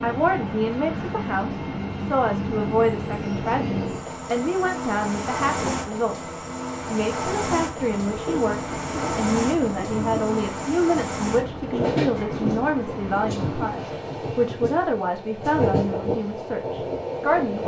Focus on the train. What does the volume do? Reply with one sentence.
The volume of the train stays about the same.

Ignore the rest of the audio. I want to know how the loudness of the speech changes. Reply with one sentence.
The loudness of the speech stays about the same.